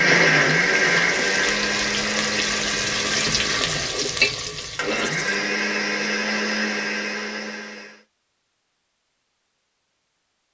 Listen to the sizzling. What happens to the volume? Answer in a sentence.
The volume of the sizzling goes up.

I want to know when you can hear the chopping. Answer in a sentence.
The chopping can't be heard in this clip.